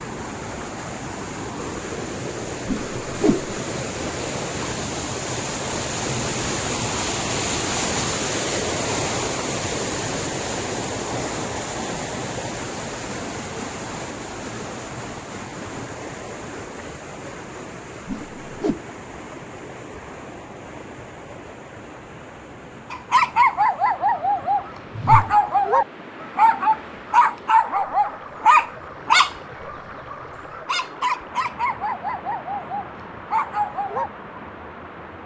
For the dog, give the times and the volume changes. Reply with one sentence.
The dog can be heard from 22.9 to 34.1 s, getting quieter.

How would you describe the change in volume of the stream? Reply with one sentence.
The loudness of the stream goes down.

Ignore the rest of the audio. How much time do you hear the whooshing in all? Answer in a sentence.
The whooshing can be heard for 2 seconds in total.